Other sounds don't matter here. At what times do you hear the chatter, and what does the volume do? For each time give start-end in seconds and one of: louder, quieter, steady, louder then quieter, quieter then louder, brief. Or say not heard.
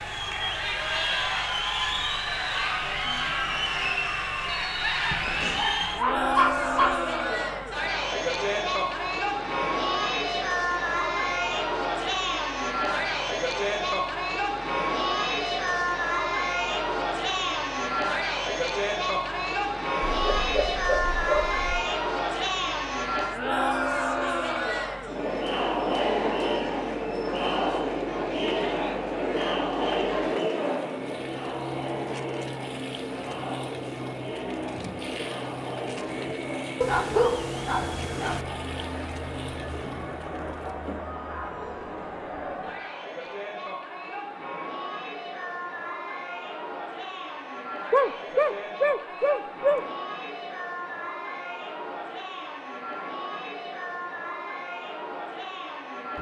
0.0-56.1 quieter.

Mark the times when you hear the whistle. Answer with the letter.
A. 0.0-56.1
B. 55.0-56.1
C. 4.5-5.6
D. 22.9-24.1
C.